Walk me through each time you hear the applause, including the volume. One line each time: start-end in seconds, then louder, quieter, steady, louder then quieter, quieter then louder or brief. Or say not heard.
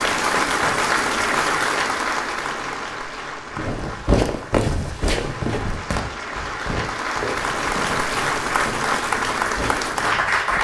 0.0-10.6 quieter then louder.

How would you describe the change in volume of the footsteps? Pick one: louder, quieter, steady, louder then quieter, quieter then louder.
quieter.